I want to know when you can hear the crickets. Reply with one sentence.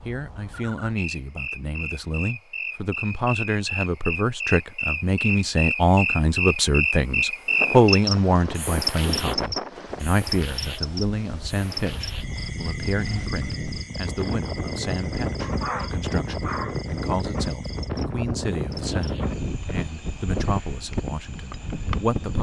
You can hear the crickets from 0.0 to 22.3 s.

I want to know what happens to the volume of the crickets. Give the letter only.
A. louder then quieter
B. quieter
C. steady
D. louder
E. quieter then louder
A.